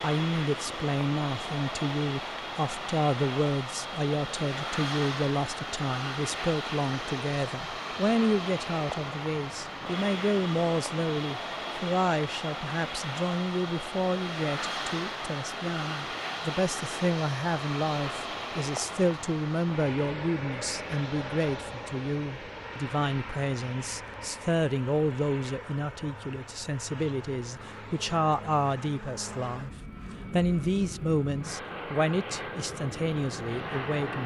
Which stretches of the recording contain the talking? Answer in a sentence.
The talking can be heard from 0.0 to 34.2 s.